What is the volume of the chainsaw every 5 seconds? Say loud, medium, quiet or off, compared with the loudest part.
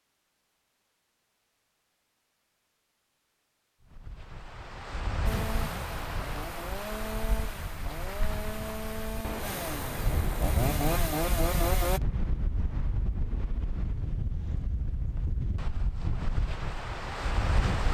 off, medium, loud, off.